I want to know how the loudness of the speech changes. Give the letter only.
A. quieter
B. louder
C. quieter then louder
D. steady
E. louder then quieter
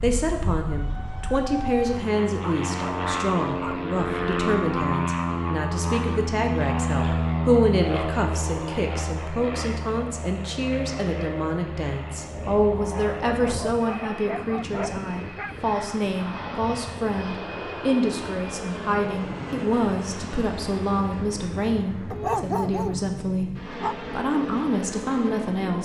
D.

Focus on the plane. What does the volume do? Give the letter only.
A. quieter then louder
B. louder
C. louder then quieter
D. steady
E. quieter
E.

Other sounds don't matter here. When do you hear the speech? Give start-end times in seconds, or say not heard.
0.0-25.8.